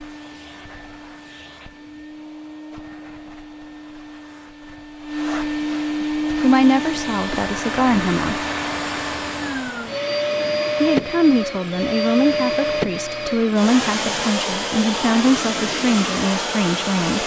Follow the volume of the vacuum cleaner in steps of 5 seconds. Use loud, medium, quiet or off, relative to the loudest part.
quiet, loud, loud, loud.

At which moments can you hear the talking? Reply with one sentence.
The talking can be heard from 6.0 to 8.4 s and from 10.8 to 17.2 s.